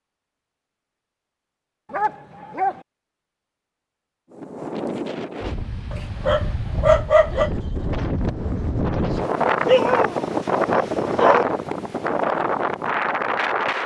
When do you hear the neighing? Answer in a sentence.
The neighing can't be heard in this clip.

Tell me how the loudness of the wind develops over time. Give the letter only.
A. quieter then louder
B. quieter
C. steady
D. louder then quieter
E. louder
E.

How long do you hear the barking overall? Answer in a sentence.
You can hear the barking for 4 seconds altogether.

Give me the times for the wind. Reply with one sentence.
You can hear the wind from 4.3 to 13.8 s.